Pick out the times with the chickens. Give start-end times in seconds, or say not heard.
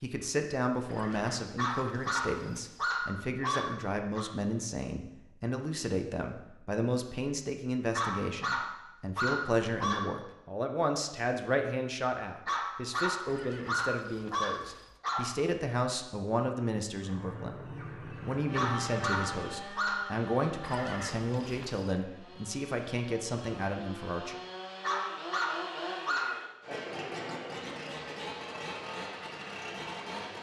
16.9-19.6.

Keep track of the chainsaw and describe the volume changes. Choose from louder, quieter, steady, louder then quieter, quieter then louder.
quieter then louder.